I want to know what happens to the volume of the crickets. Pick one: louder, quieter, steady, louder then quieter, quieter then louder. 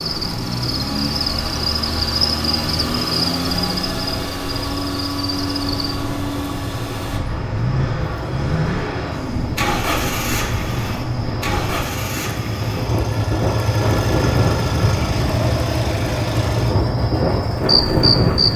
quieter then louder.